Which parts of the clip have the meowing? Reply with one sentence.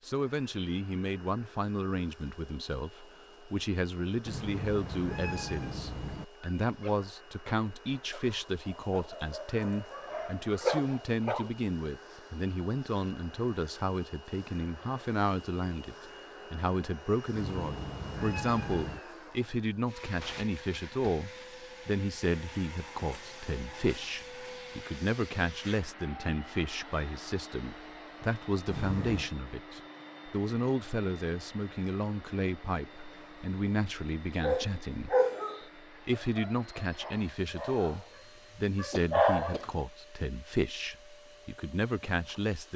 You can hear the meowing from 4.2 to 6.2 s, from 17.4 to 19.0 s and from 28.6 to 29.3 s.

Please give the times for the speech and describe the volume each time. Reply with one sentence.
The speech can be heard from 0.0 to 35.1 s, at a steady volume; and from 35.8 to 42.7 s, at a steady volume.